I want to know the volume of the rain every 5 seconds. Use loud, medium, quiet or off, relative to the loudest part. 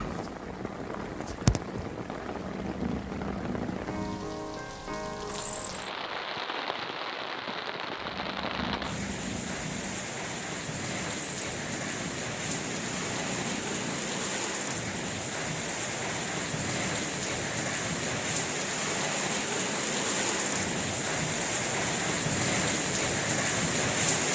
medium, medium, medium, loud, loud.